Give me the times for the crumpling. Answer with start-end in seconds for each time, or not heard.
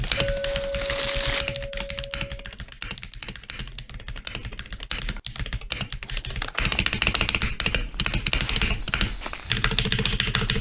0.1-1.4, 6.0-8.0.